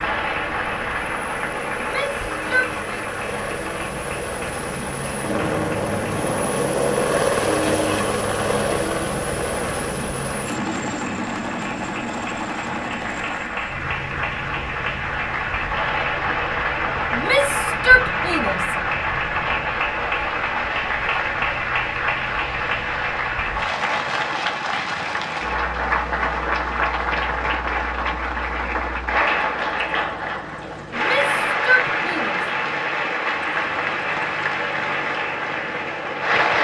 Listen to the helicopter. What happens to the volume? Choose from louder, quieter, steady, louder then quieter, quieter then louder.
quieter.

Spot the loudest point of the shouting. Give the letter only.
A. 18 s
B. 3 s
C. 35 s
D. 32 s
A.